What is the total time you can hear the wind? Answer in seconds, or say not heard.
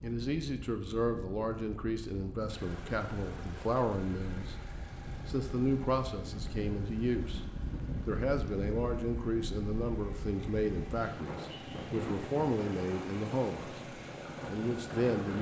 15 s.